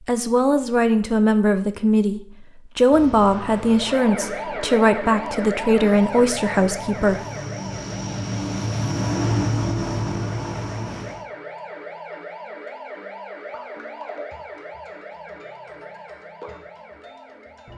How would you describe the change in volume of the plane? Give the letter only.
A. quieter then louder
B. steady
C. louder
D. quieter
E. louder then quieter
C.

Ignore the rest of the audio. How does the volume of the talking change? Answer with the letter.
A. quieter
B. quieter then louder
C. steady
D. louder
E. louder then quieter
C.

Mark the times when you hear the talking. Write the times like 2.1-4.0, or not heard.
0.1-7.2.